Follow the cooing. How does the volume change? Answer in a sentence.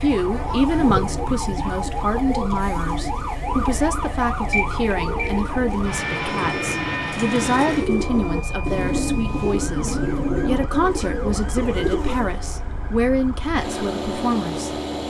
The volume of the cooing goes up.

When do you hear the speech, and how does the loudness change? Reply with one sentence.
The speech can be heard from 0.0 to 15.0 s, at a steady volume.